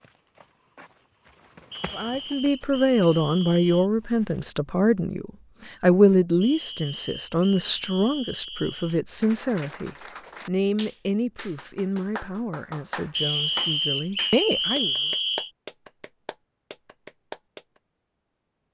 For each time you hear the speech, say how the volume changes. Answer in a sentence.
The speech can be heard from 1.9 to 14.9 s, getting quieter.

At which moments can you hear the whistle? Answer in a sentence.
You can hear the whistle from 1.7 to 3.9 s, from 6.4 to 9.0 s and from 13.2 to 15.5 s.